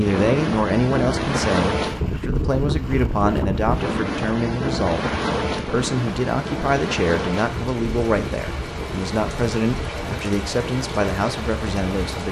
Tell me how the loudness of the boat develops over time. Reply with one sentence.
The loudness of the boat goes down.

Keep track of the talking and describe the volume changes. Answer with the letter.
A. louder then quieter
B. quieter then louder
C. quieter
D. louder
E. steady
E.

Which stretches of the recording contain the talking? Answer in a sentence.
The talking can be heard from 0.0 to 12.2 s.